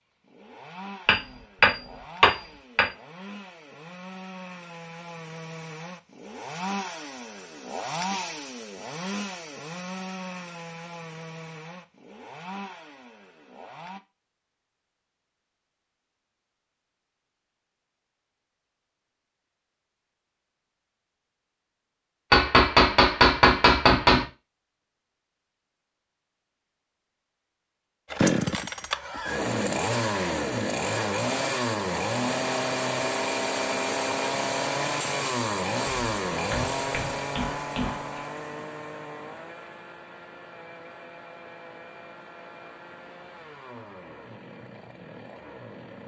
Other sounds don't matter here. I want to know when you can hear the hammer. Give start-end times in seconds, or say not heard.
1.1-2.9, 22.3-24.2, 36.0-38.2.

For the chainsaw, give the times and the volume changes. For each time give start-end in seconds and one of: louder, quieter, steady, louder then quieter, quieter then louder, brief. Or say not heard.
0.0-14.0 louder then quieter
28.1-46.0 quieter.